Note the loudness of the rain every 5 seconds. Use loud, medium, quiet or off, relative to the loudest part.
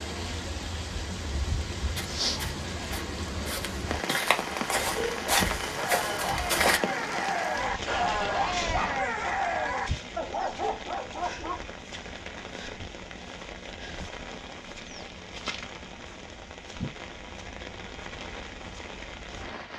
loud, loud, medium, medium.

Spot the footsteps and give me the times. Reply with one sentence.
You can hear the footsteps from 1.8 to 6.8 s.